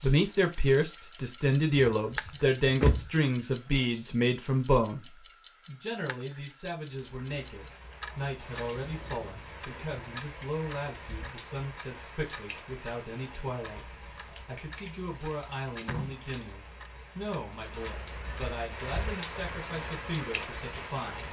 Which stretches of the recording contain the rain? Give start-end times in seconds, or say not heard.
6.8-21.2.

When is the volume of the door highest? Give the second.
3 s.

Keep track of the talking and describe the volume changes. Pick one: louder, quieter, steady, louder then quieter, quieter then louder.
quieter.